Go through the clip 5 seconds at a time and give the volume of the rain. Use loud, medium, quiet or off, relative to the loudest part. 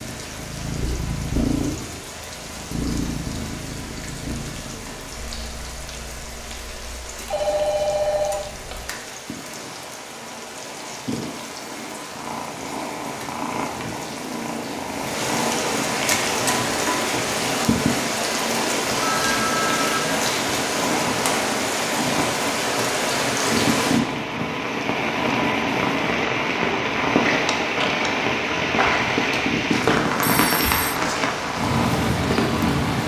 quiet, quiet, quiet, loud, loud, loud, loud.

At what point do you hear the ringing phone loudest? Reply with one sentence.
The volume of the ringing phone peaks at 8 seconds.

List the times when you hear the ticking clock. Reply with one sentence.
The ticking clock can't be heard in this clip.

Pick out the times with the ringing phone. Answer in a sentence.
The ringing phone can be heard from 7.3 to 8.8 s, from 18.9 to 20.1 s and from 28.8 to 30.9 s.